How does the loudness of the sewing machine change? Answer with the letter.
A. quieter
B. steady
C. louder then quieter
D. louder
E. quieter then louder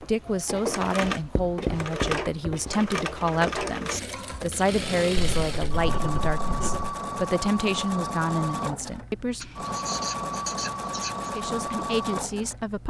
B.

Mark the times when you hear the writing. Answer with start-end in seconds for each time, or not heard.
1.0-2.7, 5.2-7.0, 9.4-11.3.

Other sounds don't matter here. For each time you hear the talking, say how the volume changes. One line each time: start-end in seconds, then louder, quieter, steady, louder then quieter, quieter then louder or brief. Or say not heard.
0.0-9.6 steady
11.3-12.8 brief.